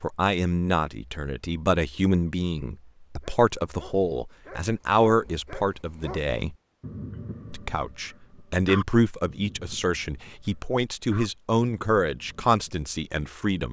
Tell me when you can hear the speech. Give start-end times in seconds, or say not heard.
0.0-6.5, 7.5-13.6.